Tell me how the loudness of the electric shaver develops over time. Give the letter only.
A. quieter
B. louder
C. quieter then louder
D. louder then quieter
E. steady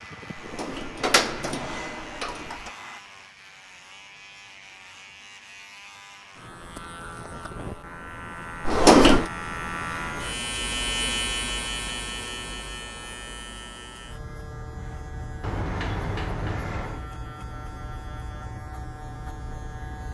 D.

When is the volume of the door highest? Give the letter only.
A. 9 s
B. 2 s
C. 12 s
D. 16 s
A.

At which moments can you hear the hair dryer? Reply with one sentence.
You can hear the hair dryer from 0.0 to 3.0 s.